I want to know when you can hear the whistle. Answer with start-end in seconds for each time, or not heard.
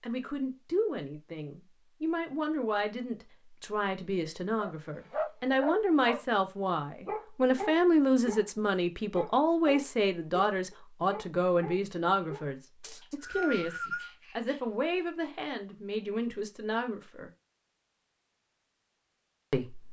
12.8-14.1.